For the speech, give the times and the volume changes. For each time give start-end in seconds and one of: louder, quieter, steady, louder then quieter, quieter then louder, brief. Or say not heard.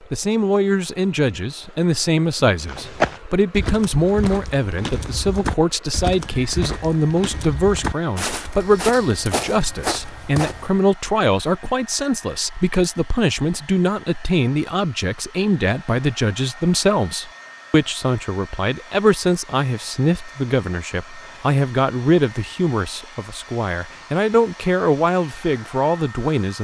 0.1-26.5 steady.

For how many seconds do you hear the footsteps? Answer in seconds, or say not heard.
8 s.